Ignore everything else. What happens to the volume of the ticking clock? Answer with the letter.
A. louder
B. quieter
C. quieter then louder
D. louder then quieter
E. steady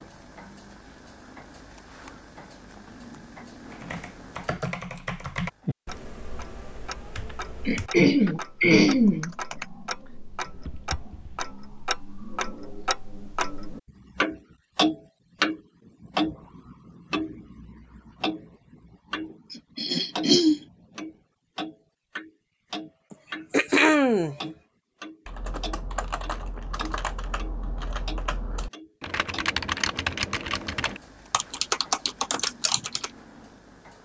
D.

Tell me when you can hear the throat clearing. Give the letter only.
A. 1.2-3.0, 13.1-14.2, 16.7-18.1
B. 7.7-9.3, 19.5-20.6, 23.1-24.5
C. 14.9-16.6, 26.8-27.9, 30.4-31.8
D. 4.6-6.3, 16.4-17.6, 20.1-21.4
B.